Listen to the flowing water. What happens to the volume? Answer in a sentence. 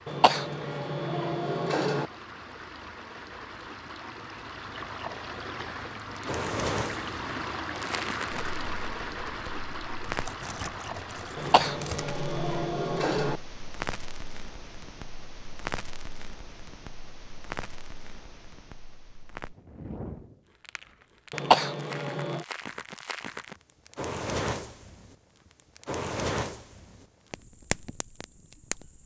The volume of the flowing water goes up, then down.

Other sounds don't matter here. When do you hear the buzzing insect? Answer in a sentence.
The buzzing insect can't be heard in this clip.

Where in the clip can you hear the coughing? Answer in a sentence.
The coughing can be heard from 0.1 to 2.0 s, from 11.3 to 13.4 s and from 21.3 to 22.4 s.